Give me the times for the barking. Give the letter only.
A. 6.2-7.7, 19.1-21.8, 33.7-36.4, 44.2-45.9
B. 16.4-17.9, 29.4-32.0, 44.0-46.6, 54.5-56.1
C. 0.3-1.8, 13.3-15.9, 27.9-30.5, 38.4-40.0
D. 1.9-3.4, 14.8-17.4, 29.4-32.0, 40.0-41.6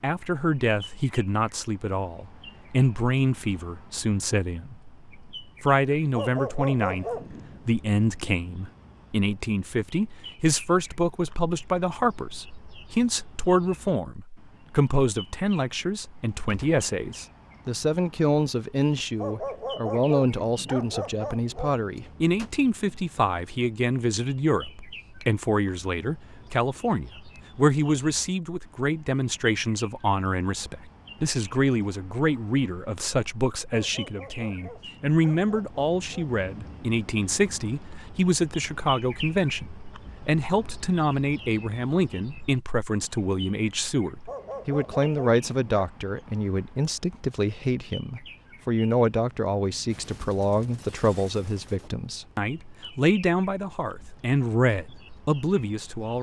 A.